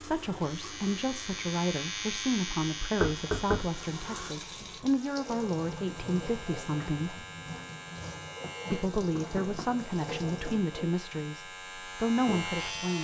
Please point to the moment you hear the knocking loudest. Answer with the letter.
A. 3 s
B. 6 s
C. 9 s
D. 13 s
A.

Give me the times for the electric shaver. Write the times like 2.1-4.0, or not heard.
0.2-13.0.